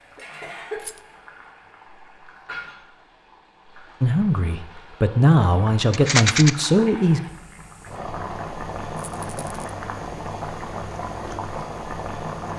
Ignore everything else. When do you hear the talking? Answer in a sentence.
You can hear the talking from 4.0 to 7.2 s.